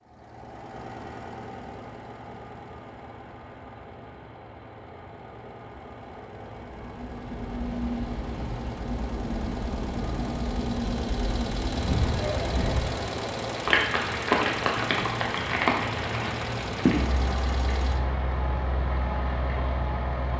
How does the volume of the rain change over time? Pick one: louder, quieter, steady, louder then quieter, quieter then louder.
louder then quieter.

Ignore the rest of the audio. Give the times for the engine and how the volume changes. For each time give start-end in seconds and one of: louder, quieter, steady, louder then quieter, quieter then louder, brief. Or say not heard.
0.0-20.3 louder.